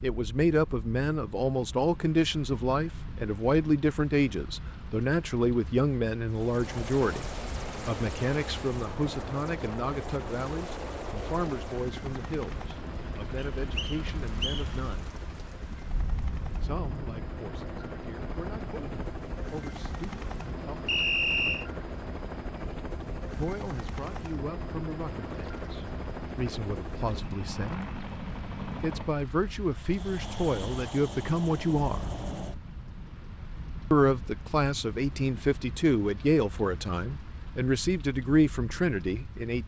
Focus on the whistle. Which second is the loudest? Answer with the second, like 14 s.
21 s.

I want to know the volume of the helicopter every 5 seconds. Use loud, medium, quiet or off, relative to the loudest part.
off, loud, loud, loud, loud, loud, loud, off.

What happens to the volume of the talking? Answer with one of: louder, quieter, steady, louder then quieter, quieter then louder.
quieter then louder.